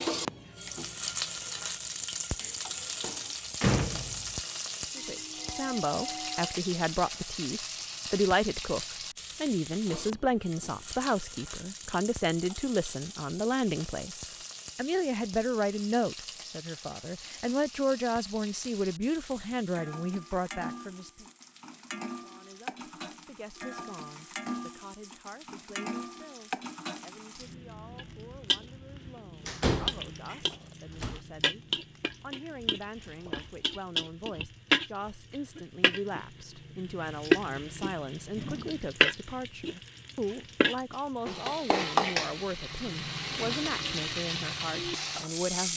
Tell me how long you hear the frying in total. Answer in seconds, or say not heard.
46 s.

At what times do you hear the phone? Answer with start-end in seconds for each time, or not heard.
5.0-6.5, 33.0-33.8.